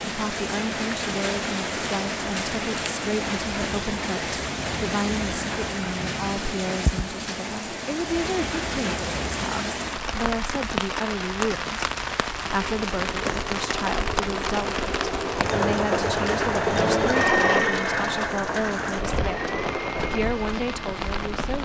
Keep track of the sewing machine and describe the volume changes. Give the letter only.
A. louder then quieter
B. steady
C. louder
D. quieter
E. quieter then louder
A.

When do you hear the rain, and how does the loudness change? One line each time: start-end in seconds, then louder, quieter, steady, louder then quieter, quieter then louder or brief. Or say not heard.
0.0-21.6 steady.